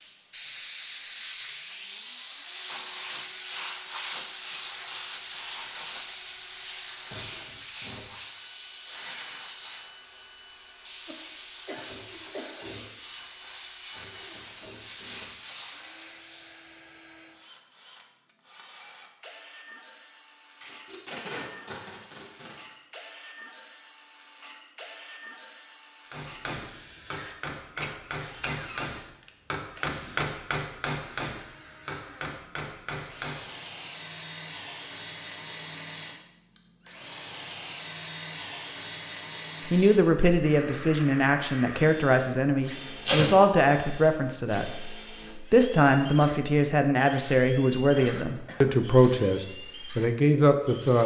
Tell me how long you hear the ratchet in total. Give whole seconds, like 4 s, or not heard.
not heard.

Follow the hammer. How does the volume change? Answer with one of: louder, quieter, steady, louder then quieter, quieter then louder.
louder then quieter.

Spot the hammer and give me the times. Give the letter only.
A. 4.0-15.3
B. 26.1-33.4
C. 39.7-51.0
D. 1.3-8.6
B.